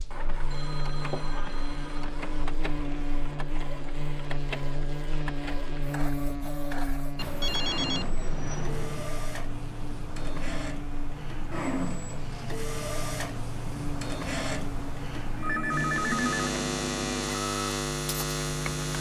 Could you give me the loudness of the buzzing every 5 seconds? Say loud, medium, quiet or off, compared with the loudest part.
medium, medium, medium, loud.